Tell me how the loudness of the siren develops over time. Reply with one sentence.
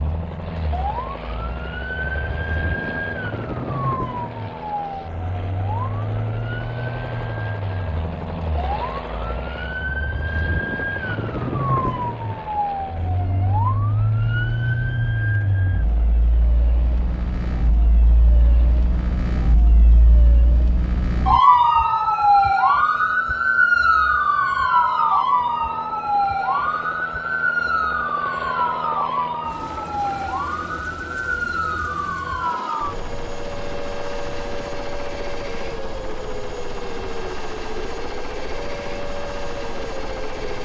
The volume of the siren goes up, then down.